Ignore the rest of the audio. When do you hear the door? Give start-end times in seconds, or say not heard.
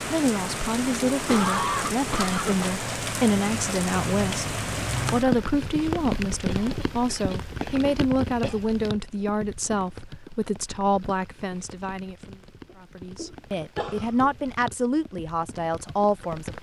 not heard.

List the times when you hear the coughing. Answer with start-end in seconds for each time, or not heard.
1.2-2.7, 6.5-8.6, 13.2-14.3.